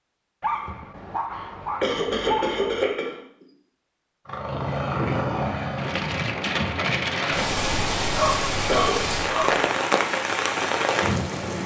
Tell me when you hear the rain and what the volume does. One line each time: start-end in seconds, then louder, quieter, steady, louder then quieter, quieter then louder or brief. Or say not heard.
5.8-11.6 steady.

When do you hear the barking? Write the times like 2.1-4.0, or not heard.
0.4-2.9, 8.1-9.6.